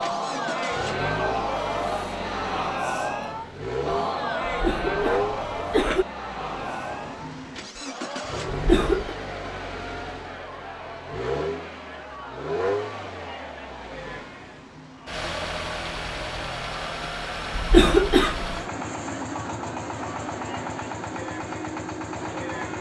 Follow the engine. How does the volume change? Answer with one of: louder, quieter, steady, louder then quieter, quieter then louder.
steady.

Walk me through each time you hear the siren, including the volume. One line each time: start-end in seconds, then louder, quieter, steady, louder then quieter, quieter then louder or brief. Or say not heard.
not heard.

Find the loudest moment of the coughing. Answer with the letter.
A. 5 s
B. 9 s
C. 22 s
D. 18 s
D.